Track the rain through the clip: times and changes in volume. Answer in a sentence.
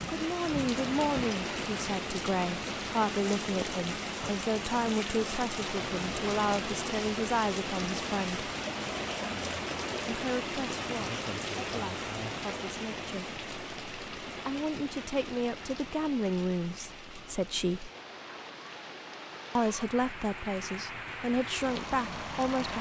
You can hear the rain from 0.0 to 22.7 s, getting quieter.